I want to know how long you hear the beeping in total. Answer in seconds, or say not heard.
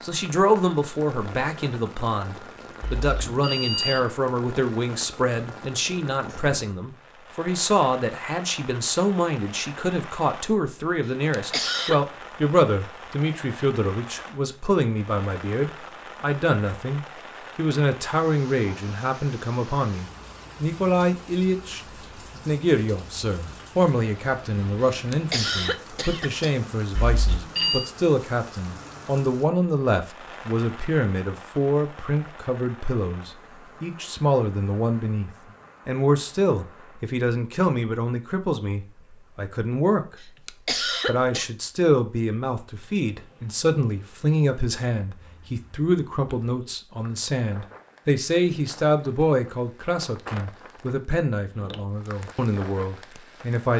2 s.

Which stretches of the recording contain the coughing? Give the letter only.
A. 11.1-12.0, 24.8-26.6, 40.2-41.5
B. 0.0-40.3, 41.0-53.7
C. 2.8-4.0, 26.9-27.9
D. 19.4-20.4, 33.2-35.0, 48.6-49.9
A.